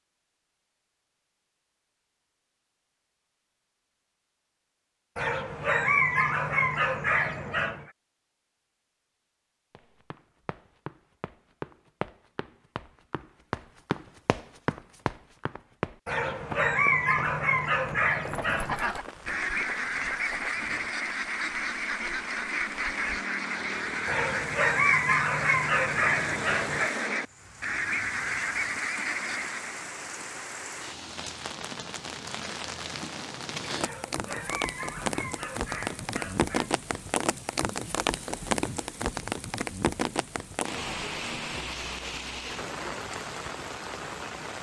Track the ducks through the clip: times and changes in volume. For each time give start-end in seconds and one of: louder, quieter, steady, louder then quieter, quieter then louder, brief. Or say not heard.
18.3-29.8 steady.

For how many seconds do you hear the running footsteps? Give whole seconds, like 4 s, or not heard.
11 s.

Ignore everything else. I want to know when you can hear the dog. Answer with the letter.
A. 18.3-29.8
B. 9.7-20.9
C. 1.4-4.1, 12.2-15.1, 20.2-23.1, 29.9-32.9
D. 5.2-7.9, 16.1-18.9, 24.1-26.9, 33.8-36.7
D.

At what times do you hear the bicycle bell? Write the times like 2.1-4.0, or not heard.
not heard.